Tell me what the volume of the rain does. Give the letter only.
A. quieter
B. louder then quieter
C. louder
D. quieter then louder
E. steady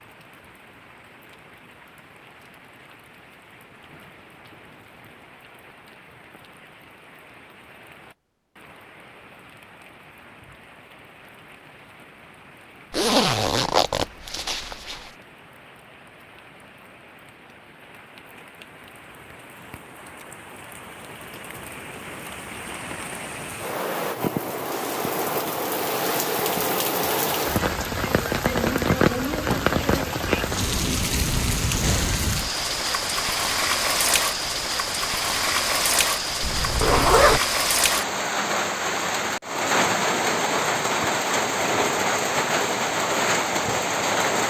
C.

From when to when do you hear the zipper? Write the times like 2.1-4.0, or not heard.
12.9-15.1, 36.4-37.4.